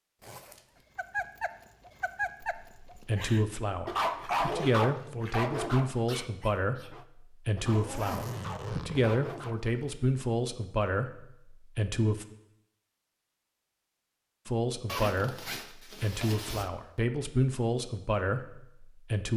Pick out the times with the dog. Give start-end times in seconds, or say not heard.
0.9-9.6.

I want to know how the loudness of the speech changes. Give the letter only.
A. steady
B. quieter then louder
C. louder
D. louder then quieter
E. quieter
A.